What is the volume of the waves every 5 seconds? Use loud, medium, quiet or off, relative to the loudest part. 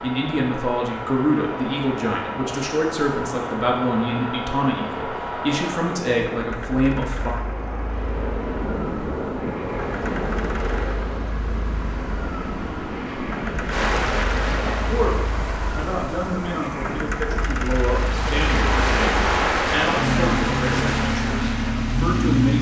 medium, medium, loud, loud, loud.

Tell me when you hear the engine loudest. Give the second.
22 s.